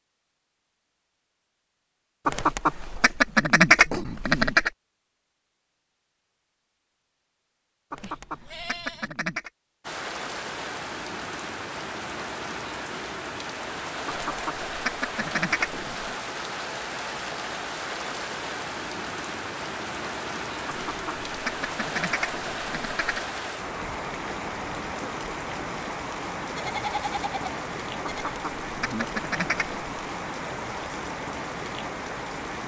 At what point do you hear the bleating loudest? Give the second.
27 s.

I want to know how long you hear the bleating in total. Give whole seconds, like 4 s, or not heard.
3 s.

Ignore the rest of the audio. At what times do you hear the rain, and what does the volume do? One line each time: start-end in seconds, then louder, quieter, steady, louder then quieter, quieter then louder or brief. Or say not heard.
9.8-32.6 steady.